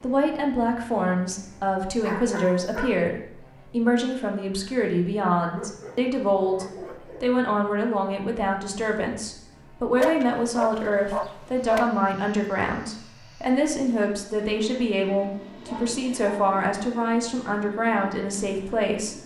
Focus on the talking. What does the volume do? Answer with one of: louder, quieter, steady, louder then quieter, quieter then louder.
steady.